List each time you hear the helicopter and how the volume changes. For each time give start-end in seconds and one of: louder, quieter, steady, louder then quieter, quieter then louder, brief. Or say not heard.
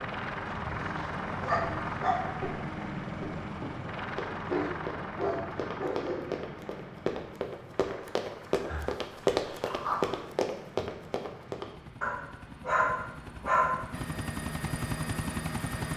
0.0-15.9 quieter then louder.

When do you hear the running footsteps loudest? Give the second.
9 s.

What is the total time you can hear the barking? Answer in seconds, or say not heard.
7 s.